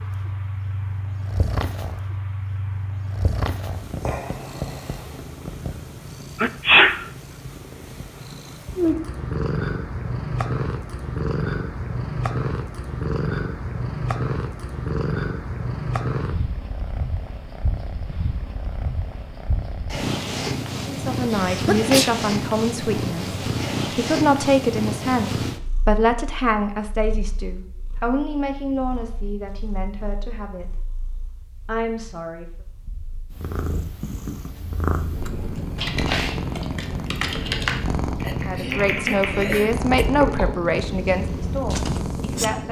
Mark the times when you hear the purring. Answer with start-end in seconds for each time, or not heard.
0.0-42.6.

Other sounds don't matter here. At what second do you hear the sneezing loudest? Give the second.
7 s.